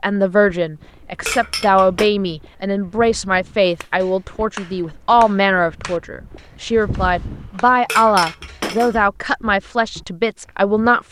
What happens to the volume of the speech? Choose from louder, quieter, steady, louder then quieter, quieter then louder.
steady.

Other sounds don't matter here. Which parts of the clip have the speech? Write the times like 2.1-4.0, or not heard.
0.0-11.0.